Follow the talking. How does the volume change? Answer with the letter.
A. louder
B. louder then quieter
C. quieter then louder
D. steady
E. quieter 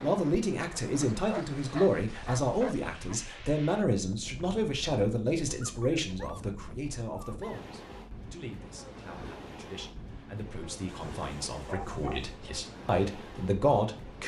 C.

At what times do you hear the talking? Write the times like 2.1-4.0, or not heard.
0.0-14.2.